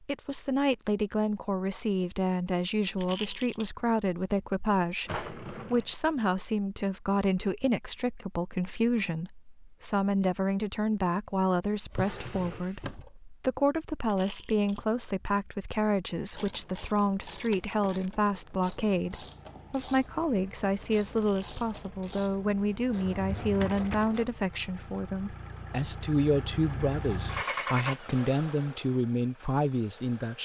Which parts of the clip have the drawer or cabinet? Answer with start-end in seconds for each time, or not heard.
5.0-5.9, 11.8-13.1, 23.1-24.2.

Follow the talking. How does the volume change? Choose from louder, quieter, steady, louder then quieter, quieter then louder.
steady.